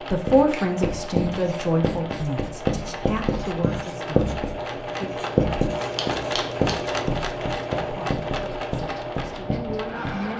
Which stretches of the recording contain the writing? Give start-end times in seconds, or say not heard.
0.2-10.3.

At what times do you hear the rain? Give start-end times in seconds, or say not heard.
not heard.